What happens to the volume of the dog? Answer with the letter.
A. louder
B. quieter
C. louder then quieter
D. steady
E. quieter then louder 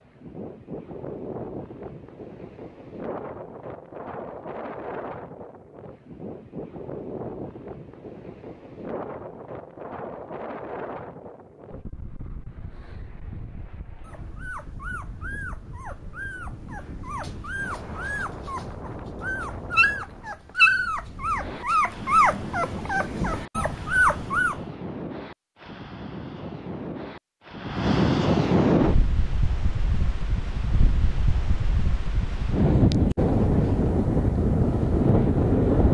A.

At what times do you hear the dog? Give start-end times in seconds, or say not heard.
14.0-24.6.